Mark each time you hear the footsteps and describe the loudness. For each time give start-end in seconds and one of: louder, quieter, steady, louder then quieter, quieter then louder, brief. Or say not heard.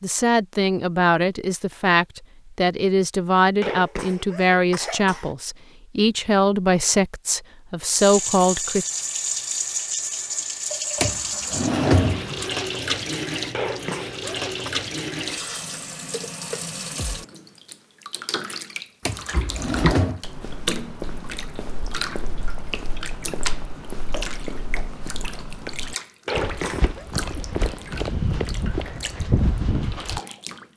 19.3-30.2 louder.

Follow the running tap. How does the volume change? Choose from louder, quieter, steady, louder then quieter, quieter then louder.
quieter.